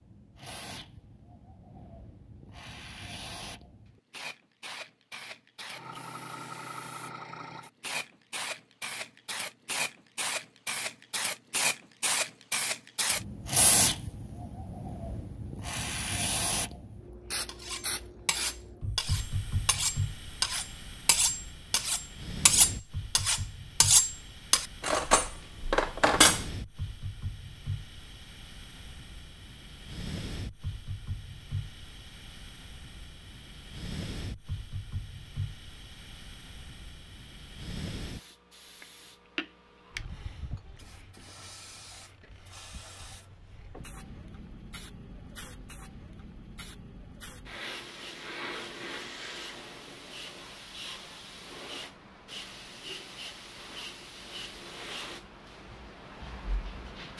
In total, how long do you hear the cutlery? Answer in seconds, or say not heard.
9 s.